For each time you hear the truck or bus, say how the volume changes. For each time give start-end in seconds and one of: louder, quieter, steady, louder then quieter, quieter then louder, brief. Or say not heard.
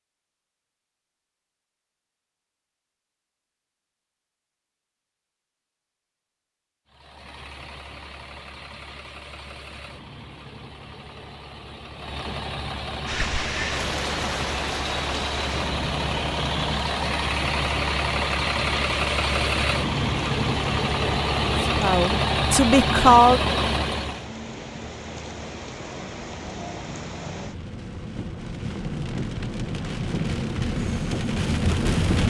6.8-24.3 louder.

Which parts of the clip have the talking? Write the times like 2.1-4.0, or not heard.
21.8-23.6.